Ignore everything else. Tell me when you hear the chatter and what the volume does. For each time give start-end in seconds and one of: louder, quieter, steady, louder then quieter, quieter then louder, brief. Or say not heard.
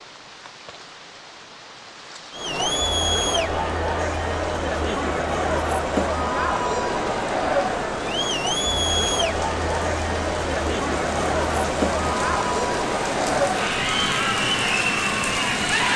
2.3-15.9 steady.